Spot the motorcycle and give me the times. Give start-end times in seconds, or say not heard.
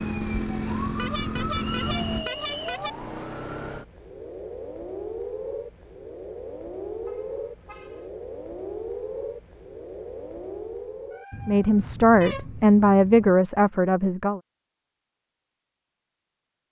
0.0-2.3.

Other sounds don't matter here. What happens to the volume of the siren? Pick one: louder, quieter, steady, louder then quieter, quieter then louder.
steady.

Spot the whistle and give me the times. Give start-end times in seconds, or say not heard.
1.6-2.9.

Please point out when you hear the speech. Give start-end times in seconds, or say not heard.
11.4-14.4.